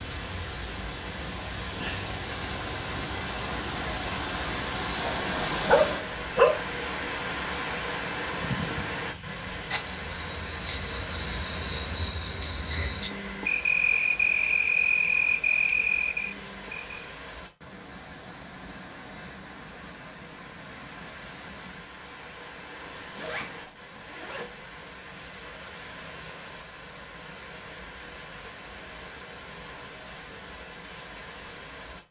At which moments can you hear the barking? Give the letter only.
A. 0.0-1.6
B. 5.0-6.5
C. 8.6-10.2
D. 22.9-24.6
B.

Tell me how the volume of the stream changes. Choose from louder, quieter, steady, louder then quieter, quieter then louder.
quieter.